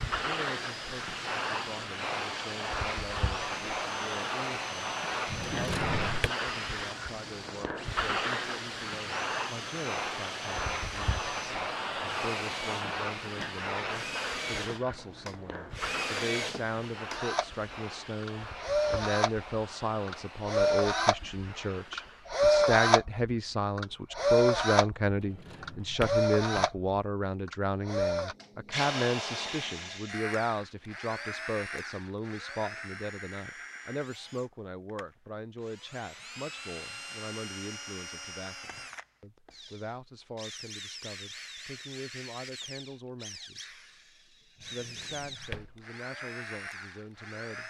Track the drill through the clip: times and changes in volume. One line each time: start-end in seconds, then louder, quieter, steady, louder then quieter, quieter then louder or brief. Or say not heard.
0.0-47.6 louder then quieter.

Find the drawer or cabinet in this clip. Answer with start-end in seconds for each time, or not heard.
5.2-6.3, 25.1-26.7, 44.5-45.8.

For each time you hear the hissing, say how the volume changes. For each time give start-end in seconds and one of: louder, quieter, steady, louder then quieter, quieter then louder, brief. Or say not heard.
0.0-22.4 quieter.